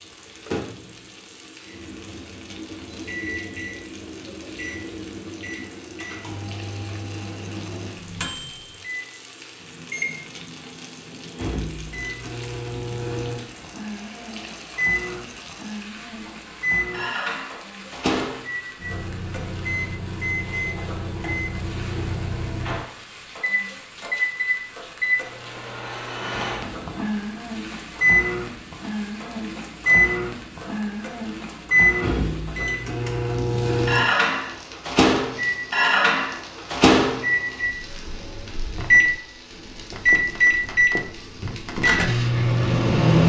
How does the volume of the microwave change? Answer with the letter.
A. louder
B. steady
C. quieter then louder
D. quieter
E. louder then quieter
A.